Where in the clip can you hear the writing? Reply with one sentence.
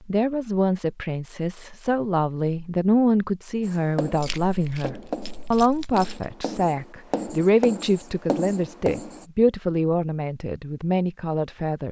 You can hear the writing from 3.6 to 9.2 s.